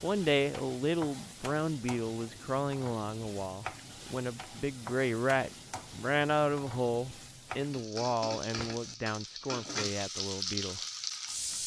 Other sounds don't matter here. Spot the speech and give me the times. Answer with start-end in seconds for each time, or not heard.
0.0-10.8.